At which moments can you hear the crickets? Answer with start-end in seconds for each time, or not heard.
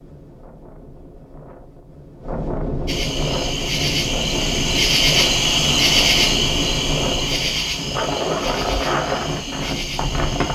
2.9-10.4.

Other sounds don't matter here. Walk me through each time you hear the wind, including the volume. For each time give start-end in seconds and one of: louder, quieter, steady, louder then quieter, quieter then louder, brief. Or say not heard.
0.0-10.4 louder.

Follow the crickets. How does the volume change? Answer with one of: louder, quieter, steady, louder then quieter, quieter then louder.
louder then quieter.